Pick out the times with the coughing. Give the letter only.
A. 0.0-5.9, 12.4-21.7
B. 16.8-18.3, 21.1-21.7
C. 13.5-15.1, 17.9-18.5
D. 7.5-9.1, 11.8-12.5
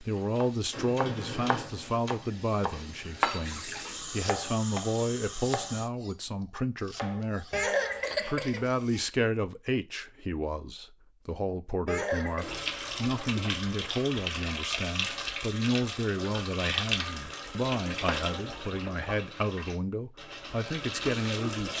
D.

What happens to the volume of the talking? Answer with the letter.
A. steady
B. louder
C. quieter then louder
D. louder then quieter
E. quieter
A.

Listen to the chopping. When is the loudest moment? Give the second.
3 s.